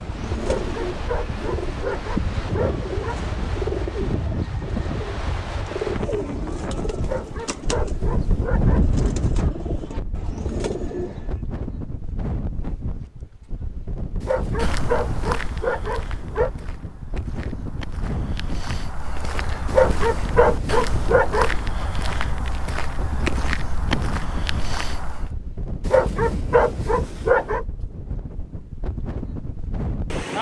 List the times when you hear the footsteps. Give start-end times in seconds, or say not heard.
14.6-25.3.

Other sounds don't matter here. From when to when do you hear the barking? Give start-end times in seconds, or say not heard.
0.4-3.1, 7.0-8.9, 14.2-16.5, 19.6-21.7, 25.9-27.6.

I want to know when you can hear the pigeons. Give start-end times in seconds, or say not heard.
0.0-11.4.